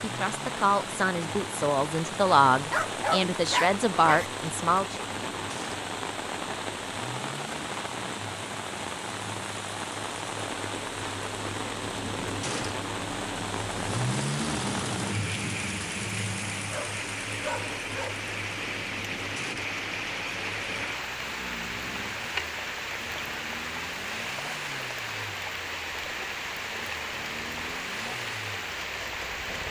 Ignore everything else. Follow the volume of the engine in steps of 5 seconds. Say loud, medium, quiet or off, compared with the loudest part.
medium, medium, loud, loud, medium, medium.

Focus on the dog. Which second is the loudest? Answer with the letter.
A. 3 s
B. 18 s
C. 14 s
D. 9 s
A.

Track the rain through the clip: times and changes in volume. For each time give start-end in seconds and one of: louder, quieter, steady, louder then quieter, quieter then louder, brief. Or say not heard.
0.0-29.6 steady.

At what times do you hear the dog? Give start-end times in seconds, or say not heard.
2.7-4.3, 16.6-18.1.